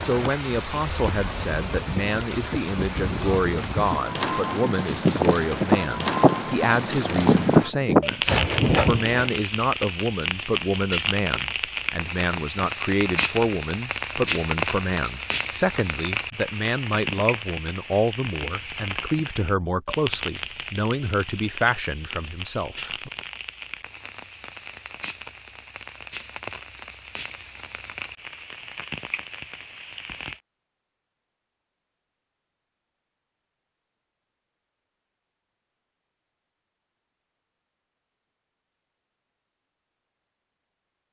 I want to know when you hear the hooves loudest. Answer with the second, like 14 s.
7 s.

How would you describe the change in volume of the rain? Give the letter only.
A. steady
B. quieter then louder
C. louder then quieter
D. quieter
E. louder
D.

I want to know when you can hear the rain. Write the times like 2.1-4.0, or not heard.
0.0-30.4.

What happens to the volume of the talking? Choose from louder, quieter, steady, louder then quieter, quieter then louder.
steady.